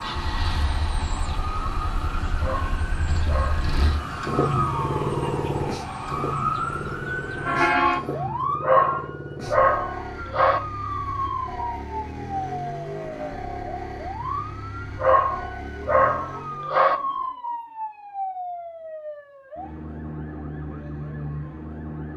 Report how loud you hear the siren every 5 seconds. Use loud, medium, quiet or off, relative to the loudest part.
medium, loud, medium, medium, medium.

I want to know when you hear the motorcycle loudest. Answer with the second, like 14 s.
5 s.